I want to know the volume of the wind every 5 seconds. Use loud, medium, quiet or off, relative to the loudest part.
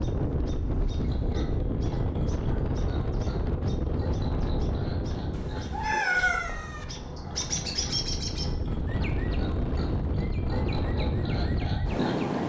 loud, medium, loud.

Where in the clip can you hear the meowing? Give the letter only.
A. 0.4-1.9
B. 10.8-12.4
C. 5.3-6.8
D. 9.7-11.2
C.